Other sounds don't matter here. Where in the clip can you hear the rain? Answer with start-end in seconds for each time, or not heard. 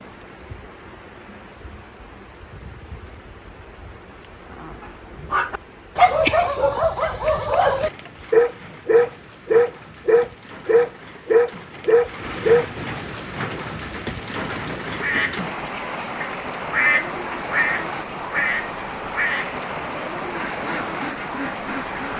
0.0-22.1.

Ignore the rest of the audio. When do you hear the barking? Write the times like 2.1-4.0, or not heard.
5.3-12.7.